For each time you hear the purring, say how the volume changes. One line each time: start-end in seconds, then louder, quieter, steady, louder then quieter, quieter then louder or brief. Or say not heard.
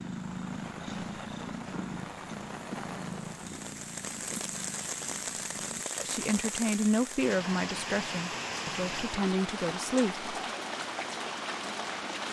0.0-5.8 quieter.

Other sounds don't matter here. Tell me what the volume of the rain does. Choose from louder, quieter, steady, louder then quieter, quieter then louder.
louder.